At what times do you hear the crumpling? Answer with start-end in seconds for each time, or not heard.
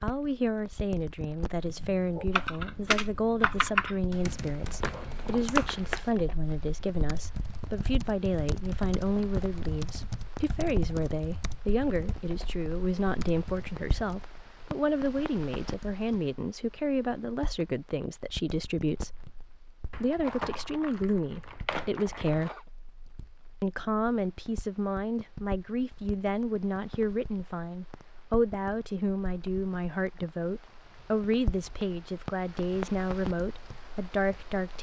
4.8-6.2, 19.9-22.6.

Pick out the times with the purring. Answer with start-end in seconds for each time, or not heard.
not heard.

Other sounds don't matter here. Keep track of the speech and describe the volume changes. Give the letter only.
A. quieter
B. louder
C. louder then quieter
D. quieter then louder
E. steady
E.